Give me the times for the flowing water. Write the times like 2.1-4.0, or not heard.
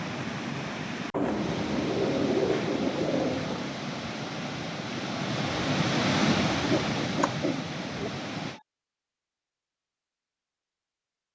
0.0-8.6.